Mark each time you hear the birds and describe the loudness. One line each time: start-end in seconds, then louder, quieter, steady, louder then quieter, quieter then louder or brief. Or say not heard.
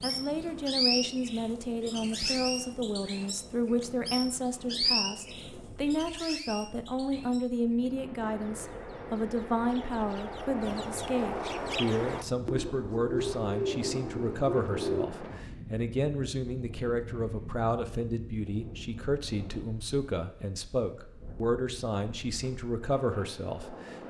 0.0-15.1 quieter then louder.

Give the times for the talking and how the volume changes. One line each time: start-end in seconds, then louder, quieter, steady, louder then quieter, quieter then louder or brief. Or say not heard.
0.0-23.9 steady.